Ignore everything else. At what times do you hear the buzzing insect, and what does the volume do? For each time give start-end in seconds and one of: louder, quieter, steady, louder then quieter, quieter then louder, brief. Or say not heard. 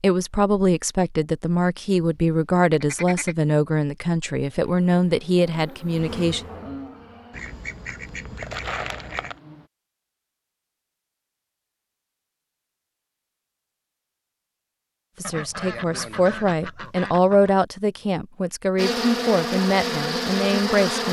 4.4-9.7 louder then quieter
18.8-21.0 brief.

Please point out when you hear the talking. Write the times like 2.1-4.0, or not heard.
0.0-6.4, 15.2-21.0.